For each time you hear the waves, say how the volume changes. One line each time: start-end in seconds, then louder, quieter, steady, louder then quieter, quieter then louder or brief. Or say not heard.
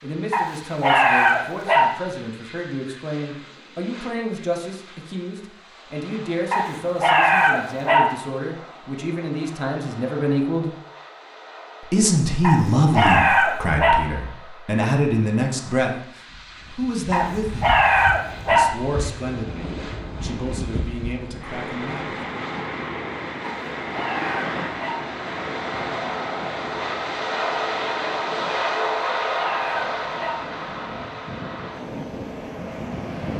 16.3-33.3 louder then quieter.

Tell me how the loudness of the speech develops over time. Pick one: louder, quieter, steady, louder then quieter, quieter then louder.
louder then quieter.